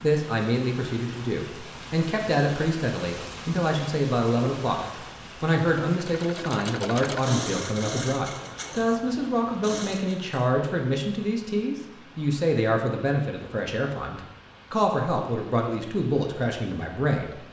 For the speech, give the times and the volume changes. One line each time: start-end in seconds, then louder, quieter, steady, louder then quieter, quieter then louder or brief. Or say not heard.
0.0-17.3 steady.